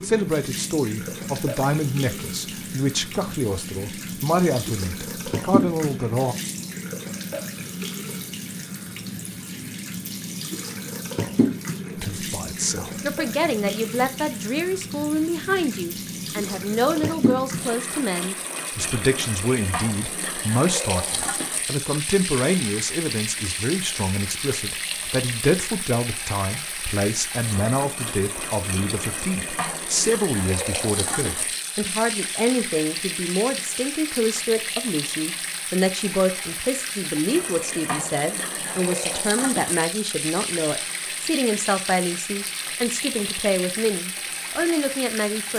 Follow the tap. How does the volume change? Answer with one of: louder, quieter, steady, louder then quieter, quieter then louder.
steady.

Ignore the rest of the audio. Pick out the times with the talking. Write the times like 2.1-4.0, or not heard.
0.0-6.3, 11.9-45.5.